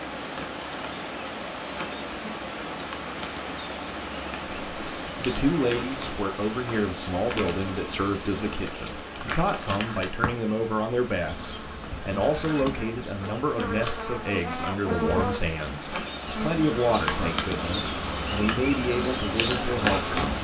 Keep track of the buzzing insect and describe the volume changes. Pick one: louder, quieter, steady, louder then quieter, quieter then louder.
louder.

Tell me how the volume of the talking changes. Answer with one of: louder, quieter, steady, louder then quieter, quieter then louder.
steady.